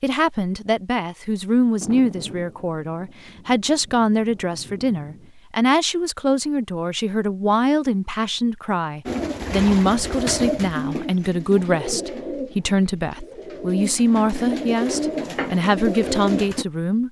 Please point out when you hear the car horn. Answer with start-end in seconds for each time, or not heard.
not heard.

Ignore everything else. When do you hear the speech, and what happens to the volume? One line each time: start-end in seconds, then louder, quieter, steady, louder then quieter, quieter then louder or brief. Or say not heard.
0.0-17.0 steady.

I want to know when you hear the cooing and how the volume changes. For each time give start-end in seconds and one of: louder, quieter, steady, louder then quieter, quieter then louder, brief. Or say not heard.
9.1-16.6 quieter then louder.